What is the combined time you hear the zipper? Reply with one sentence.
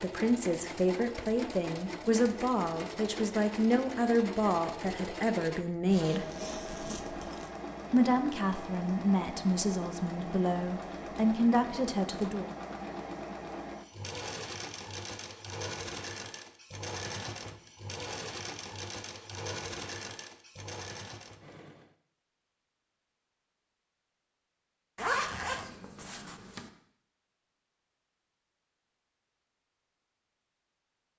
You can hear the zipper for 3 seconds altogether.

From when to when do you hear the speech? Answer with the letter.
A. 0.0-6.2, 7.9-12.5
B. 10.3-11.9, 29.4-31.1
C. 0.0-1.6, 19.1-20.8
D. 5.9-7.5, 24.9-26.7
A.